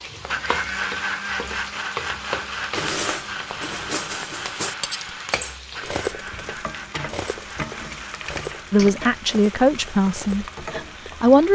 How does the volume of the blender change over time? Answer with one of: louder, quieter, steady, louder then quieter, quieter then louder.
quieter.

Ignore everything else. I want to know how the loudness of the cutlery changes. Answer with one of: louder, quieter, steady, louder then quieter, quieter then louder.
quieter.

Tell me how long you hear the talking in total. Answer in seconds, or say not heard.
3 s.